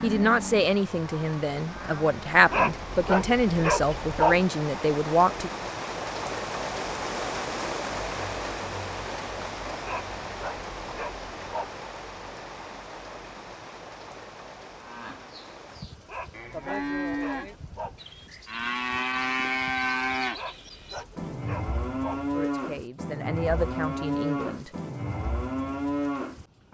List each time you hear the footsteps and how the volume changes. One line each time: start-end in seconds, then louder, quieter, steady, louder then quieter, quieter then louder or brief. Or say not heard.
not heard.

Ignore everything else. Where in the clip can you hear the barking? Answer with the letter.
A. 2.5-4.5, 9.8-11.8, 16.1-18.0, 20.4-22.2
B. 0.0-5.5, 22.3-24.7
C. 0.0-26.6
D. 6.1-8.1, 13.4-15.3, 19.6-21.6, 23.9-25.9
A.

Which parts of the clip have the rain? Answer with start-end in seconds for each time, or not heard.
0.0-26.6.